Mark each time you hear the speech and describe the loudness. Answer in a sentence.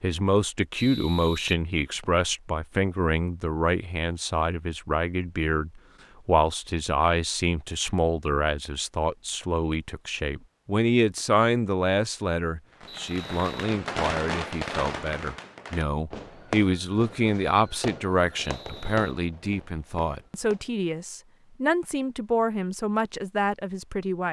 You can hear the speech from 0.0 to 24.2 s, at a steady volume.